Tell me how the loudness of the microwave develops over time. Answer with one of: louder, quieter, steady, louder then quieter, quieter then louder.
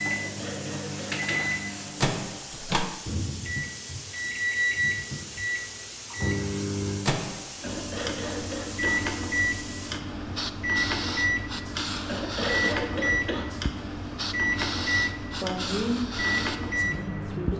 steady.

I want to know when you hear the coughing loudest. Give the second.
13 s.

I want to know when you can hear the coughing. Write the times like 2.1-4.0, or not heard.
0.1-1.6, 7.6-9.2, 12.1-13.6.